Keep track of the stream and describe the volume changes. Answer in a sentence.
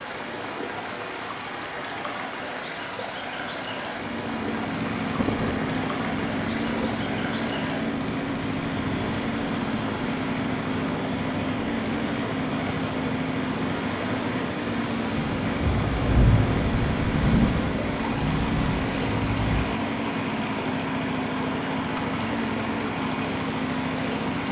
The loudness of the stream stays about the same.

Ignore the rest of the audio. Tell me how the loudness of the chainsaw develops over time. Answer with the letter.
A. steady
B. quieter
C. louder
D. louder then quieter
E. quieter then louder
A.